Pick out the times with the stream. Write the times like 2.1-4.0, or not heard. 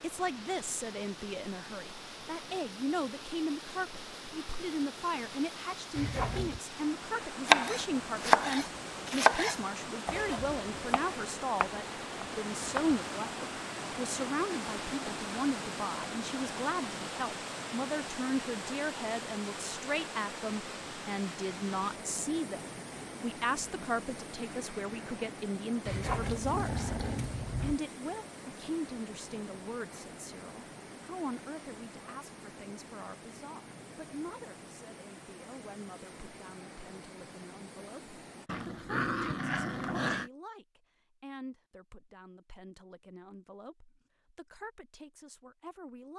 0.0-38.5.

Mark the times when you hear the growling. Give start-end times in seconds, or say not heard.
6.0-6.6, 25.9-27.8, 38.5-40.3.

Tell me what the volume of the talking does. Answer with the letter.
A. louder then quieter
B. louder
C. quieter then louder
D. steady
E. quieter
E.